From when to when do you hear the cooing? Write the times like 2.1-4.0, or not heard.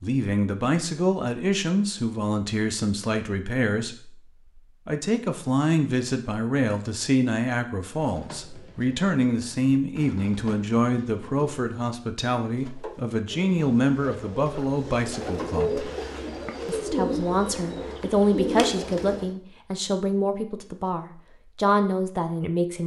8.0-19.4.